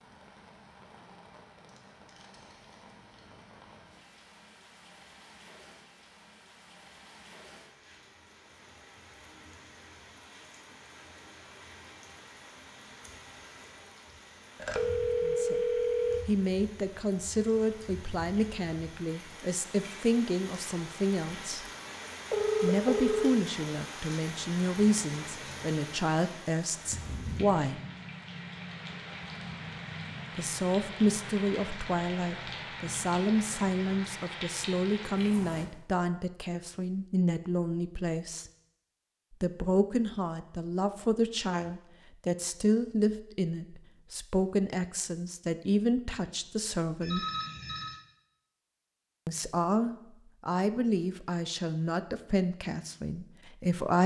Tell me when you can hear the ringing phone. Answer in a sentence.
You can hear the ringing phone from 14.6 to 16.2 s, from 22.3 to 23.3 s and from 47.0 to 48.0 s.